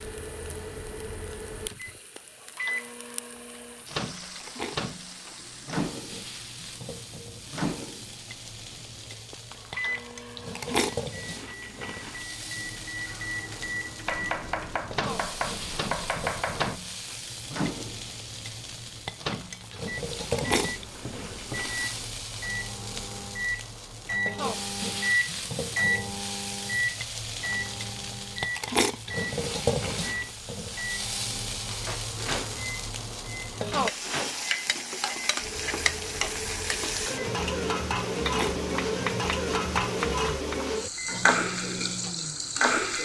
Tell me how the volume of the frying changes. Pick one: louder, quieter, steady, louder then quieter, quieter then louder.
louder.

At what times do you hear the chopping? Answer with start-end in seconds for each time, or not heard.
14.1-16.8, 38.2-40.6.